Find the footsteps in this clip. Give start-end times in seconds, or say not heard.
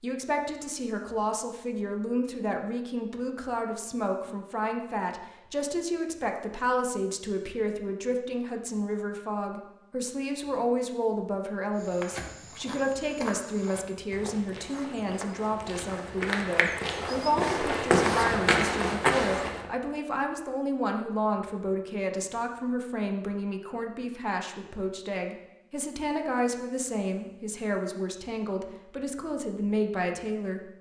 11.8-19.7.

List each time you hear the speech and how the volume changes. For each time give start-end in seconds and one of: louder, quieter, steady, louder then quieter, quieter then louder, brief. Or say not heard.
0.0-30.7 steady.